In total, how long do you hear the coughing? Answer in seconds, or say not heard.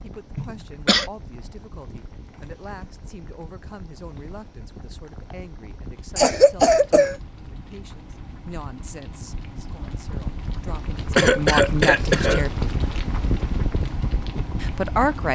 3 s.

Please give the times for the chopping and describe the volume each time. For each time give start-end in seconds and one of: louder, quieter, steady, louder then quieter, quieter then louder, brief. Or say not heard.
not heard.